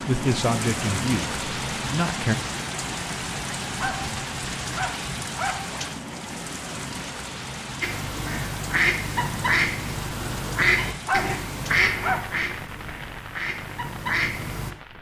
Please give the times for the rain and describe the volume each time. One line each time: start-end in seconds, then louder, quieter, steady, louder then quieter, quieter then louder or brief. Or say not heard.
0.0-14.9 quieter.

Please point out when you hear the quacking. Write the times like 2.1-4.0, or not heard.
7.8-14.7.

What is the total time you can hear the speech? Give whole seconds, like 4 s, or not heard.
2 s.